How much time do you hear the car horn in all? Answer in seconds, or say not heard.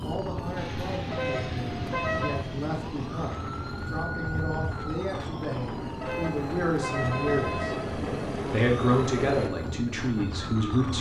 3 s.